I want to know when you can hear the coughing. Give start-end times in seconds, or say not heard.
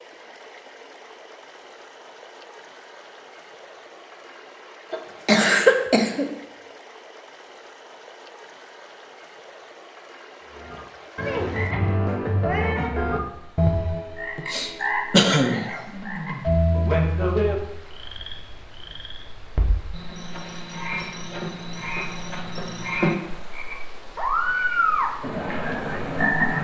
4.9-6.3, 14.3-15.8.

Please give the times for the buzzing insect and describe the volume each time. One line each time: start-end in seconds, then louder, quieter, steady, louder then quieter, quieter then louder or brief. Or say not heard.
not heard.